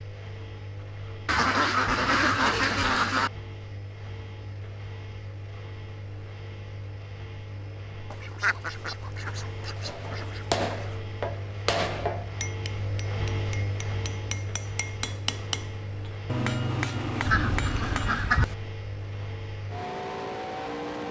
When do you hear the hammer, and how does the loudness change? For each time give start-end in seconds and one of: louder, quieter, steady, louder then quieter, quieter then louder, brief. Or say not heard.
9.8-18.4 quieter then louder.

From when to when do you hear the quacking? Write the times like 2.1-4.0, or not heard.
1.2-3.3, 8.1-10.8, 17.2-18.6.